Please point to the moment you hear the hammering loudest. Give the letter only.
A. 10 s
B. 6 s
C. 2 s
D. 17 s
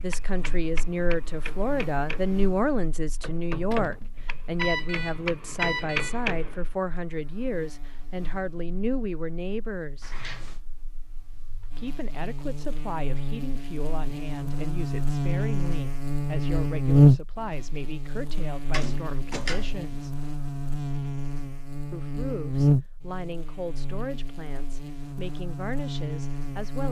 B.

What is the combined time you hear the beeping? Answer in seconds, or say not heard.
2 s.